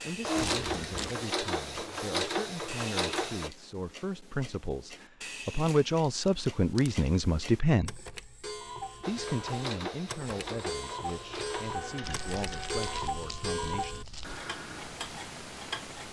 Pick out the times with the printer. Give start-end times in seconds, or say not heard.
0.0-3.5, 9.0-13.1.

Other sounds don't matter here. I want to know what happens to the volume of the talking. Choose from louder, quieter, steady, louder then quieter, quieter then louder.
louder then quieter.